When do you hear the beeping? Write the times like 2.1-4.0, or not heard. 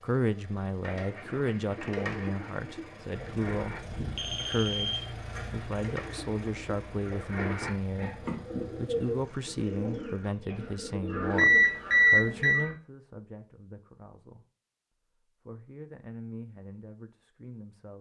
3.1-5.0, 11.3-12.7.